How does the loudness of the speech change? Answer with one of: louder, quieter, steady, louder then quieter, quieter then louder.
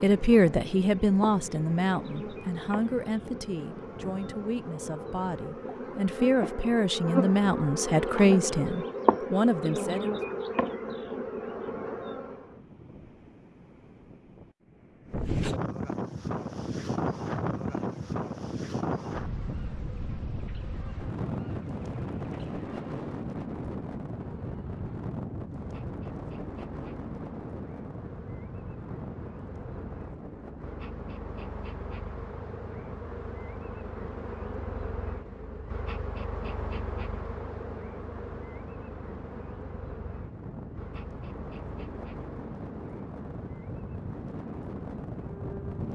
quieter then louder.